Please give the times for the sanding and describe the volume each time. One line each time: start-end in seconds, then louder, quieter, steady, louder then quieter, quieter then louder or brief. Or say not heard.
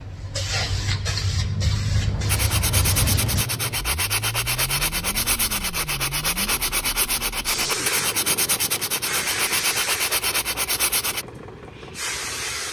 2.2-11.2 steady.